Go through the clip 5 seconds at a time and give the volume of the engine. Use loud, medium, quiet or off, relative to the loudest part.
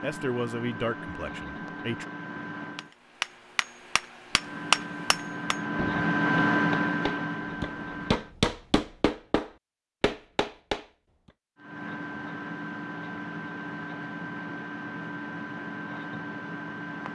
medium, loud, medium, medium.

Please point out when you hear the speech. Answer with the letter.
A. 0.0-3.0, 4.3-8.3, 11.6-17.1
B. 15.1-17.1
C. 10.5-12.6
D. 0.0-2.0
D.